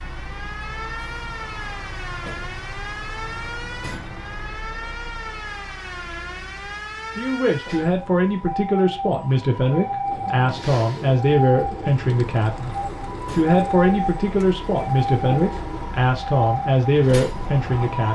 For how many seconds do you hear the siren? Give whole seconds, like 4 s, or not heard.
18 s.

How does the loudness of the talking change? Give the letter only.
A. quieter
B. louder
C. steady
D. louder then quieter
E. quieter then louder
C.